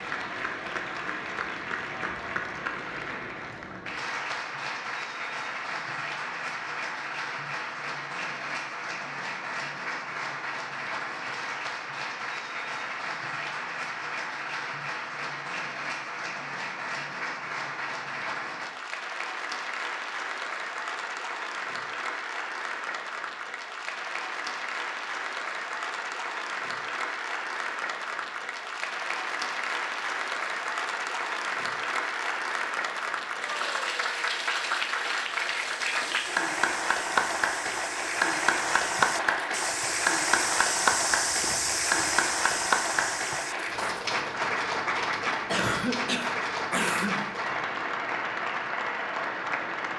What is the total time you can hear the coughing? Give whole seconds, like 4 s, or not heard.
2 s.